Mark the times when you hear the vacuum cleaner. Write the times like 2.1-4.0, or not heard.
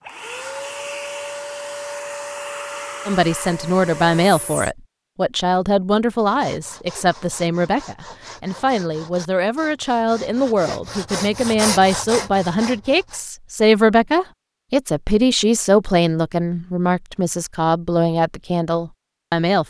0.0-4.8.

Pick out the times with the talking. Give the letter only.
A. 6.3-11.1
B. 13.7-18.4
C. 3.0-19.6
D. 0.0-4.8
C.